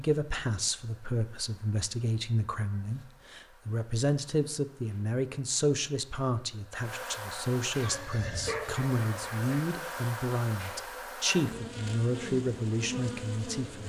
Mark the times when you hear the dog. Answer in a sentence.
You can hear the dog from 7.8 to 9.6 s.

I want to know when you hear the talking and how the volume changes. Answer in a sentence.
You can hear the talking from 0.0 to 13.8 s, at a steady volume.